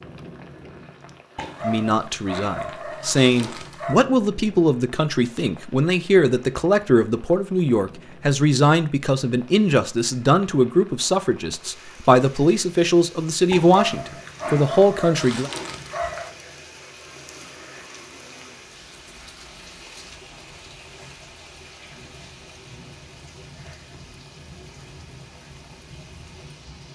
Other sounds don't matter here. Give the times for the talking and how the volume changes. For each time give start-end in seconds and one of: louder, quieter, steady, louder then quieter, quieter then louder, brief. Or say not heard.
1.6-15.5 steady.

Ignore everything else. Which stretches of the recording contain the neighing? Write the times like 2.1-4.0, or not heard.
not heard.